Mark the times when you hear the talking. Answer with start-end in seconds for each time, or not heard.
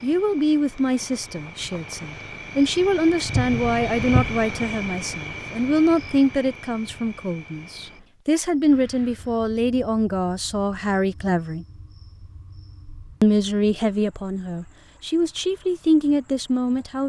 0.0-11.7, 13.2-17.0.